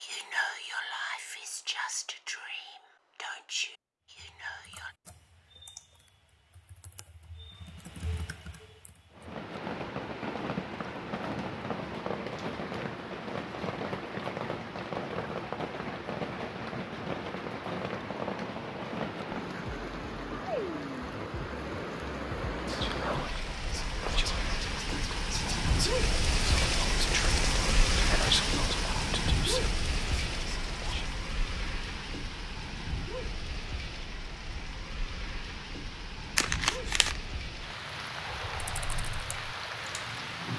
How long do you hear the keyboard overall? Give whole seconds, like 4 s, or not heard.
7 s.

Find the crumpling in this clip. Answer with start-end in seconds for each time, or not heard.
36.4-37.2.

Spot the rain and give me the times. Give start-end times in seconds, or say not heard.
9.1-40.5.